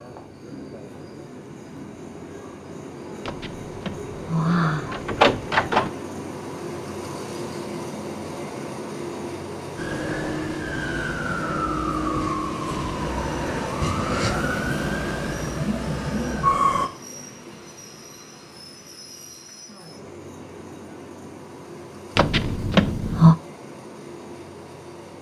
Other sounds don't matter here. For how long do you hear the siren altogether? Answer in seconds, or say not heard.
7 s.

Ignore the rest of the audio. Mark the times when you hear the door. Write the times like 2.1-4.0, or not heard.
3.2-5.9, 22.1-23.4.